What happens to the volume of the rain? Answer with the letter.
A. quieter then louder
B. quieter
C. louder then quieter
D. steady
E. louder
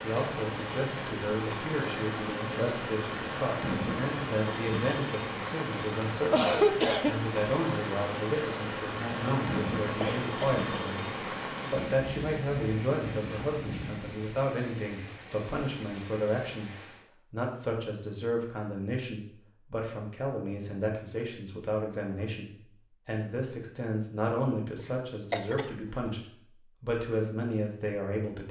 B.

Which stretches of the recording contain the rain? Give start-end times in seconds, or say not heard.
0.0-17.1.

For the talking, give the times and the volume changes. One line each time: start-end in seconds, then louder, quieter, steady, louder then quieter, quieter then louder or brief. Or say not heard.
0.0-28.4 steady.